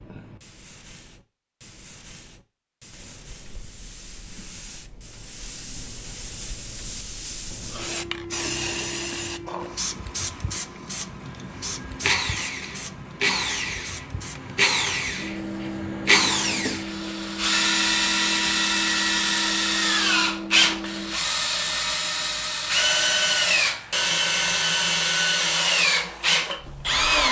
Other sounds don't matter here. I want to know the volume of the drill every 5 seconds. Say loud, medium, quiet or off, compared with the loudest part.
off, off, medium, loud, loud, loud.